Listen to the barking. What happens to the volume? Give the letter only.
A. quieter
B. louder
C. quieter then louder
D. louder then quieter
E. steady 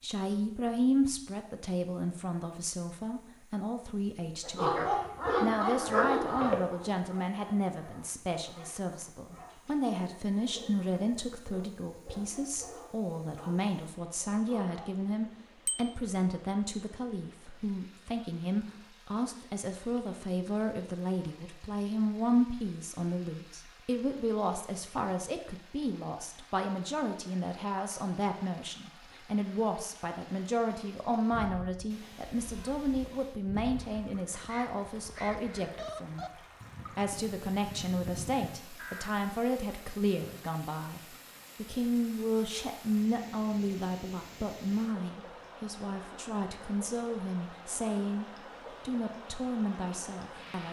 A.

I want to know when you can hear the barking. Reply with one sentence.
The barking can be heard from 4.4 to 14.9 s.